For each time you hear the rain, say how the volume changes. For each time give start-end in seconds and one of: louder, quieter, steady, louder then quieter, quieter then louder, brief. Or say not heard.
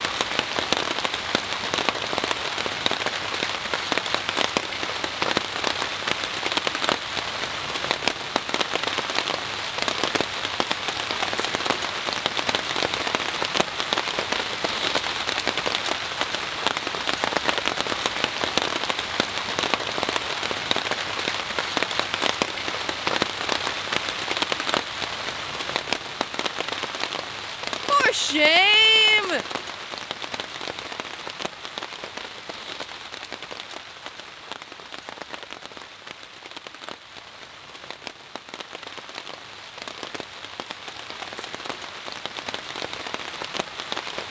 0.0-44.2 quieter.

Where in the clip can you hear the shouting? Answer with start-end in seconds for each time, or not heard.
27.9-29.4.